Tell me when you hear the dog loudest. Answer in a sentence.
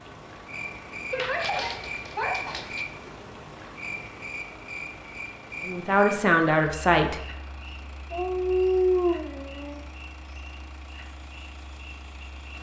The volume of the dog peaks at 9 seconds.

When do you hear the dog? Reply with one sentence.
You can hear the dog from 1.1 to 2.9 s and from 8.1 to 9.8 s.